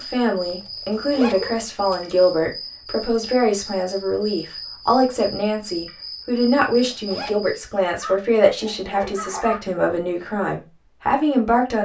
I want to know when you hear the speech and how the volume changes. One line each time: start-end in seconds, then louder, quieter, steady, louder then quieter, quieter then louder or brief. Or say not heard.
0.0-11.8 steady.